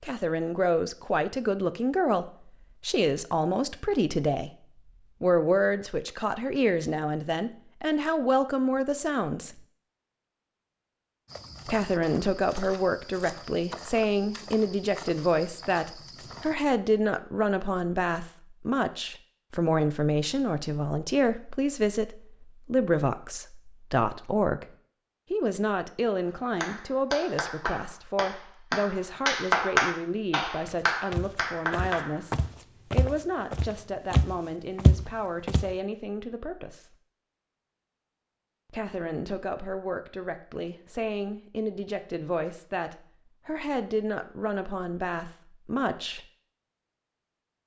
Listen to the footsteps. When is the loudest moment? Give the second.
35 s.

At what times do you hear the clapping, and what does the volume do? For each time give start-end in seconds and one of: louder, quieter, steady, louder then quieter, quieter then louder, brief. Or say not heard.
26.6-32.2 louder then quieter.